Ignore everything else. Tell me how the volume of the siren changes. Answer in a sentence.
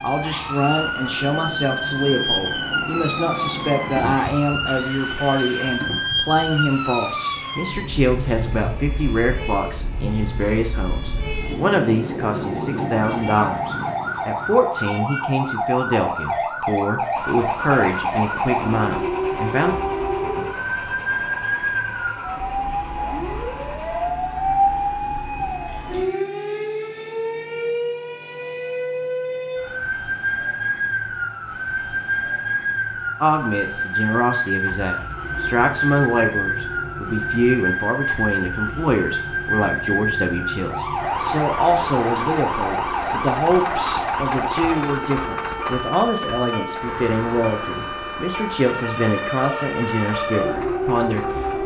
The volume of the siren stays about the same.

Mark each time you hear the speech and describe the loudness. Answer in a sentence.
You can hear the speech from 0.0 to 19.8 s, at a steady volume; and from 33.2 to 51.6 s, at a steady volume.